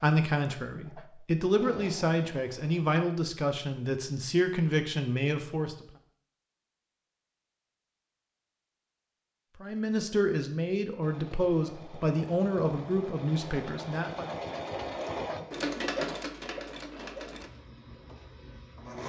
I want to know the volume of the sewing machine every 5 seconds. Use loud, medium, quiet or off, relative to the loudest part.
medium, off, loud, loud.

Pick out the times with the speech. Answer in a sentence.
You can hear the speech from 0.0 to 5.8 s and from 9.6 to 14.3 s.